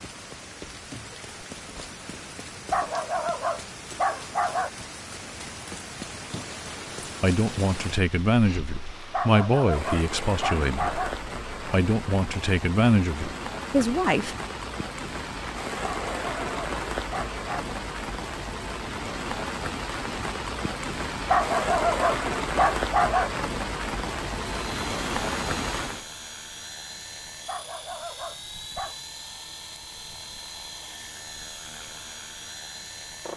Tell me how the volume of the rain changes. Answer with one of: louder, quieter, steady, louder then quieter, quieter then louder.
louder.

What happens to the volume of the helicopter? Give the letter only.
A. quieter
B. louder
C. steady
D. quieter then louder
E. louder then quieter
C.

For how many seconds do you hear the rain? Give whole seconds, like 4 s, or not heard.
26 s.